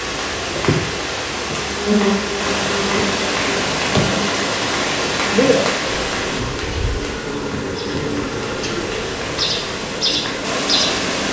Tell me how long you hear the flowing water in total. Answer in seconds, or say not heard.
11 s.